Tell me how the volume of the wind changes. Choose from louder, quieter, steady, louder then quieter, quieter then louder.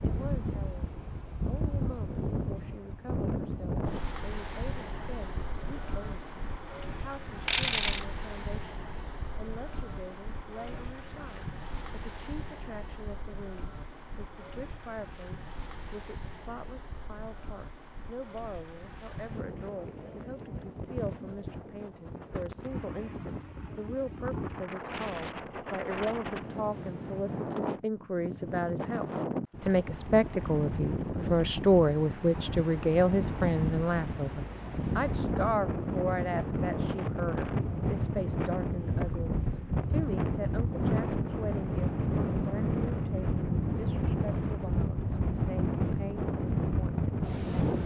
quieter then louder.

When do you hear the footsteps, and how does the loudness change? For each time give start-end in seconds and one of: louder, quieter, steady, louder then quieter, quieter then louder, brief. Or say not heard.
not heard.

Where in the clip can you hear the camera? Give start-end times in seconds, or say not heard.
7.5-8.1.